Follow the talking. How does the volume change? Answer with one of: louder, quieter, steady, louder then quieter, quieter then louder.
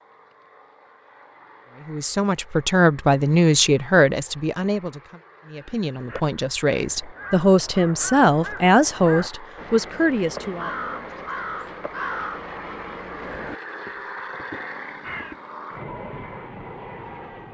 quieter then louder.